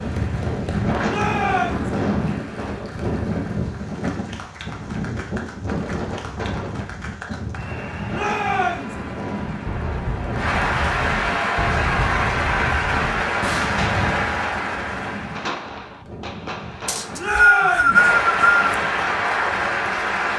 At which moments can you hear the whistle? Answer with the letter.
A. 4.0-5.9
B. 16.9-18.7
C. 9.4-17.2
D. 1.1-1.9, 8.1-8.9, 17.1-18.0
B.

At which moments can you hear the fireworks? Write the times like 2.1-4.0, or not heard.
9.4-17.2.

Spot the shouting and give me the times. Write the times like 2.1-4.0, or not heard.
1.1-1.9, 8.1-8.9, 17.1-18.0.